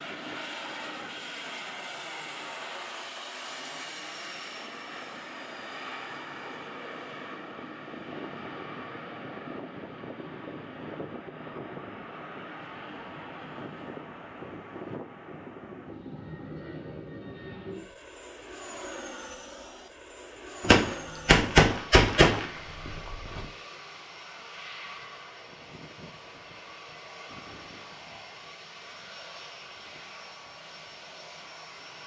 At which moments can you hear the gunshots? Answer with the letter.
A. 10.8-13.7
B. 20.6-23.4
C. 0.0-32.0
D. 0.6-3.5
B.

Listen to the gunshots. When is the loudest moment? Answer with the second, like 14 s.
21 s.